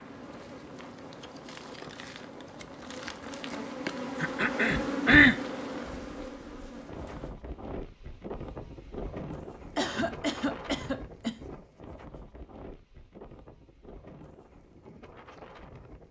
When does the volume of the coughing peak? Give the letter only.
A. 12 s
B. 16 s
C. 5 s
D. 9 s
C.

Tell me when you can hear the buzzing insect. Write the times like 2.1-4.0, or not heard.
0.0-7.3.